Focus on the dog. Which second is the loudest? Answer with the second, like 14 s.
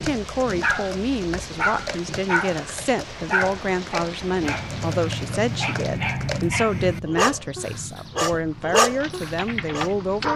9 s.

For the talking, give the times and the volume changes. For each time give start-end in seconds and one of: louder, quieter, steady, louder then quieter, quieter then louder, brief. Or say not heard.
0.0-10.3 steady.